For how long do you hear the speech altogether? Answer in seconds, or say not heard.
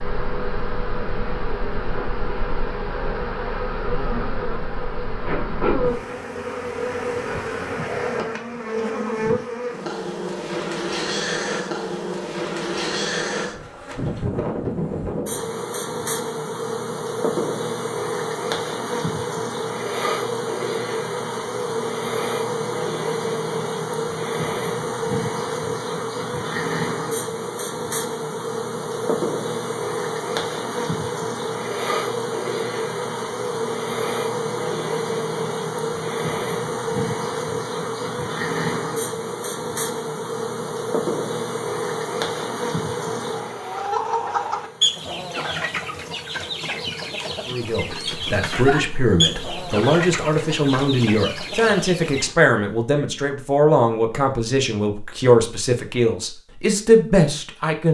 10 s.